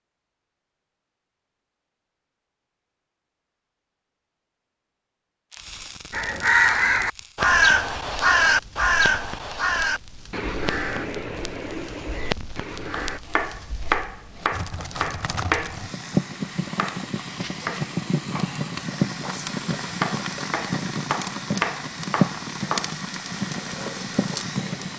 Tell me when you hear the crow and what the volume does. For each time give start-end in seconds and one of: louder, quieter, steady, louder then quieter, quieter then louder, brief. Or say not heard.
6.1-13.2 quieter.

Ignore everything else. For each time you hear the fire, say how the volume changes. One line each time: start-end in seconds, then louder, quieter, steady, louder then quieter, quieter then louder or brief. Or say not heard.
5.5-24.9 louder.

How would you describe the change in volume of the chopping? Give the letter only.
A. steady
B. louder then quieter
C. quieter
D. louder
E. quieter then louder
E.